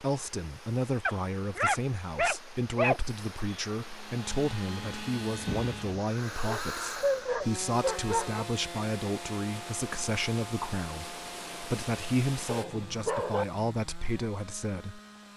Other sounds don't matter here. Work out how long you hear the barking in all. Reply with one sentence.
You can hear the barking for 5 seconds altogether.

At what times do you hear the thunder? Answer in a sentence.
The thunder can be heard from 4.8 to 6.0 s.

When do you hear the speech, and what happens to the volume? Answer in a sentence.
The speech can be heard from 0.0 to 15.0 s, at a steady volume.